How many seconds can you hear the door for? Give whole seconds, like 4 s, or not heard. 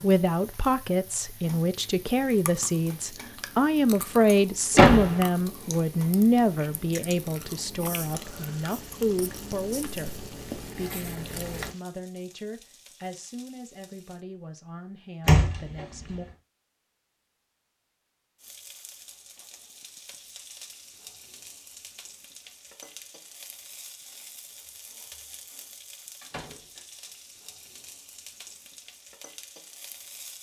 2 s.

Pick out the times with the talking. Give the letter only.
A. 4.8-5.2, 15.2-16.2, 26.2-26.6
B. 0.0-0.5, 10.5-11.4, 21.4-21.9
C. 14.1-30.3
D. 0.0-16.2
D.